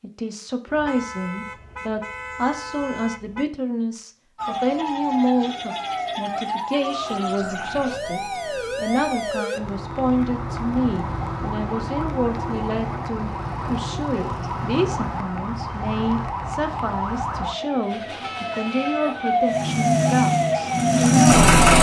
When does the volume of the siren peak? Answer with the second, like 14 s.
20 s.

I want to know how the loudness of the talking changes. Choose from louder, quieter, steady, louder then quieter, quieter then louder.
steady.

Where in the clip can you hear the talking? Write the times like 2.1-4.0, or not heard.
0.0-21.5.